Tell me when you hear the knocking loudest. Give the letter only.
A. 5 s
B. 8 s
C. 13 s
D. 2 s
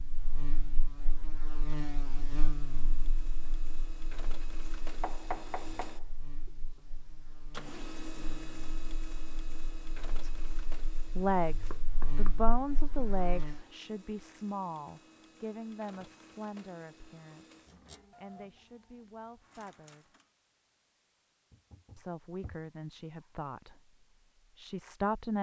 A.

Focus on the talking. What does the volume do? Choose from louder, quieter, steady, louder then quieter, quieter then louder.
quieter then louder.